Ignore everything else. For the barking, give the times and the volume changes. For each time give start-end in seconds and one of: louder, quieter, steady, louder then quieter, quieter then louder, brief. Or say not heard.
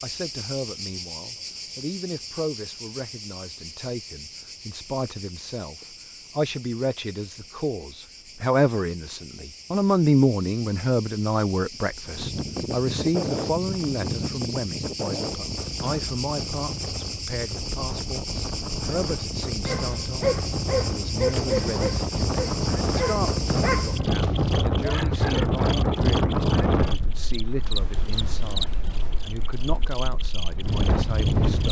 19.6-25.9 quieter.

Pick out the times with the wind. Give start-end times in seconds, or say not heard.
12.1-31.6.